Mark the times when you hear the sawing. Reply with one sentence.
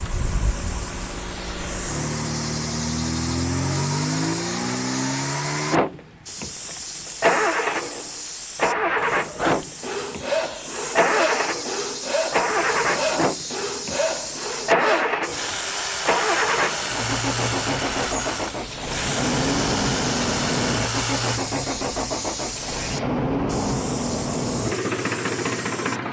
You can hear the sawing from 9.3 to 21.4 s.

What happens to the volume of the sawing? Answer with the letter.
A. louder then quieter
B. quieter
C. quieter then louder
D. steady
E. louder
D.